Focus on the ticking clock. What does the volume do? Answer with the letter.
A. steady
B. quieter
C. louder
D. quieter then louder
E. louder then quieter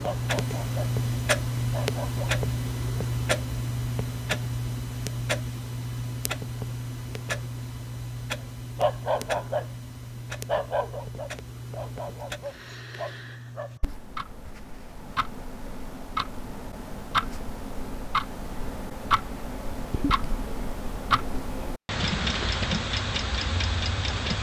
D.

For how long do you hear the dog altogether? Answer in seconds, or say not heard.
6 s.